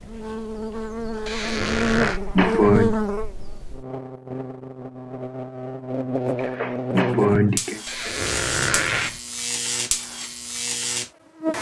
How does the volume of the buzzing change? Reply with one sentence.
The volume of the buzzing stays about the same.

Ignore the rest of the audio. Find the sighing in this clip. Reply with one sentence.
You can hear the sighing from 1.8 to 3.0 s and from 6.3 to 7.8 s.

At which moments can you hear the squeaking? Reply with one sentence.
The squeaking can be heard from 1.2 to 2.2 s and from 7.8 to 9.2 s.